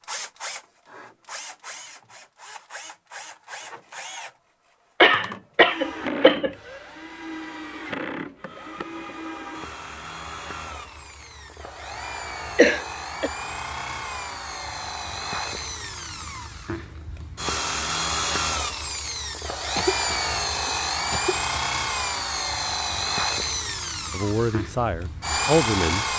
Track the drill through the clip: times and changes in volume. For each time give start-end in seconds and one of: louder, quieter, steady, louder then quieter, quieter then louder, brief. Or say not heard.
0.0-26.1 louder.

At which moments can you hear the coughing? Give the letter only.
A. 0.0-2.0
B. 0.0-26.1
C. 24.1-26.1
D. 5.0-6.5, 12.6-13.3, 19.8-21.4
D.